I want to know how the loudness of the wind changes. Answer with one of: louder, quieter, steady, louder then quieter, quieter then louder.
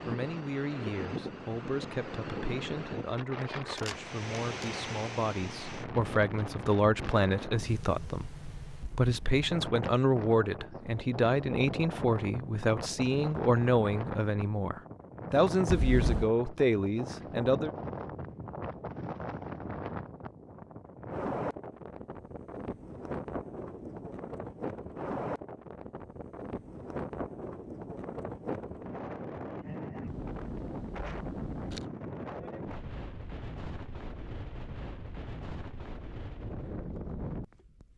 steady.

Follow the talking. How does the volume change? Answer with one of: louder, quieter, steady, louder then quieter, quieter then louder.
louder.